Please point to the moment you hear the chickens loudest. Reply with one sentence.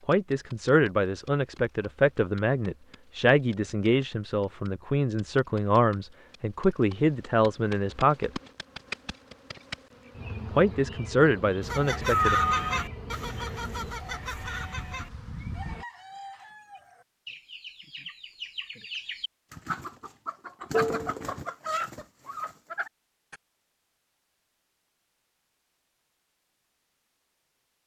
The loudest moment of the chickens is at 21 seconds.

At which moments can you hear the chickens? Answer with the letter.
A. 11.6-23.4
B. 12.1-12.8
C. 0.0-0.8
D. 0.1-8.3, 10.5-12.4
A.